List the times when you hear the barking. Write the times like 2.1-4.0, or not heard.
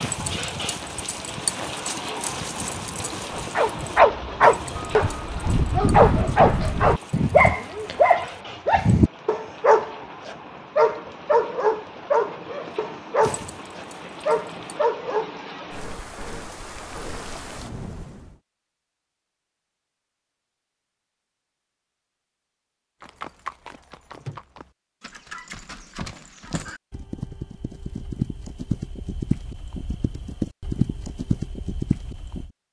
3.3-15.7.